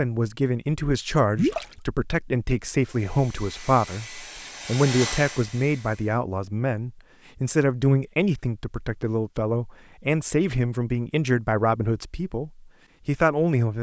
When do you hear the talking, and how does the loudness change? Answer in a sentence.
The talking can be heard from 0.0 to 13.7 s, at a steady volume.